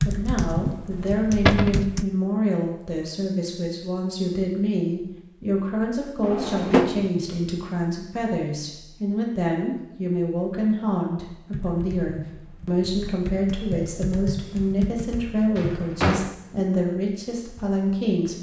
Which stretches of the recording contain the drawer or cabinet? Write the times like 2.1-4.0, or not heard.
1.4-1.9, 6.2-7.1, 15.6-16.4.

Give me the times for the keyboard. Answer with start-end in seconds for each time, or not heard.
0.0-2.0, 11.5-16.6.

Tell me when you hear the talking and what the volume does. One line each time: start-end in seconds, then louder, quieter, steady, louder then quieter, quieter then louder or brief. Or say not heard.
0.1-18.3 steady.